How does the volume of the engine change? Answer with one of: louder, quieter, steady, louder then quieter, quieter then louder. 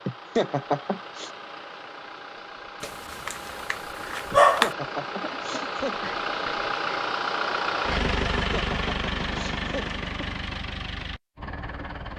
louder then quieter.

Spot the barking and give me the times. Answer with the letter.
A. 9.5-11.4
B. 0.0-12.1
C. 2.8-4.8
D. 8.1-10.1
C.